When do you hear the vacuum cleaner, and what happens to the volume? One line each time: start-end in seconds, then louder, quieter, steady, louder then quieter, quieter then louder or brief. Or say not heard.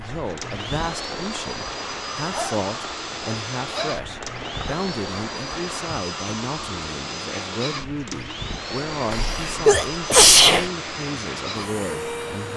0.0-12.5 steady.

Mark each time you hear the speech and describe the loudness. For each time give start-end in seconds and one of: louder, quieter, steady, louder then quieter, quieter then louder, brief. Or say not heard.
0.0-12.5 steady.